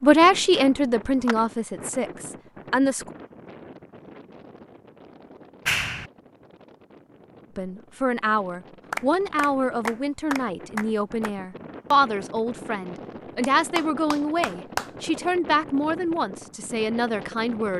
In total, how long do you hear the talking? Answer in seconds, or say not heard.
13 s.